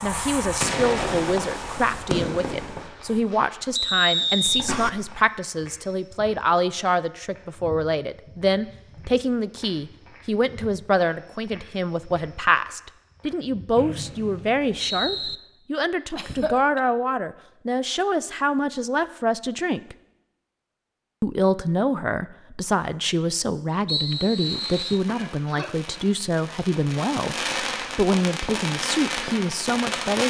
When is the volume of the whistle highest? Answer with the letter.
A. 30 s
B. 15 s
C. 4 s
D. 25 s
C.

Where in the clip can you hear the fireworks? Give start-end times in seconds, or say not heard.
0.0-3.2, 24.3-30.2.